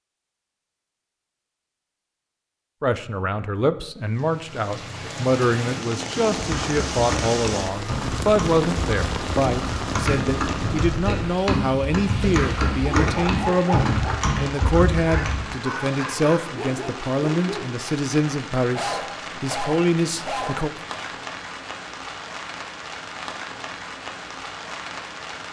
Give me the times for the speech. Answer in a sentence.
You can hear the speech from 2.8 to 20.7 s.